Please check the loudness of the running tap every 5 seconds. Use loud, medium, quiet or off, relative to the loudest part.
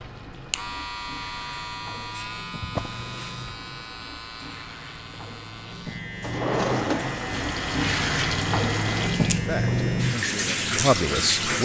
quiet, loud, loud.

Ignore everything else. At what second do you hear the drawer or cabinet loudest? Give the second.
7 s.